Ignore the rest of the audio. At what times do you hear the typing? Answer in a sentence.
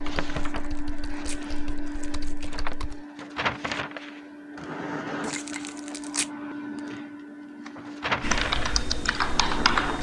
You can hear the typing from 0.0 to 3.0 s and from 8.2 to 9.9 s.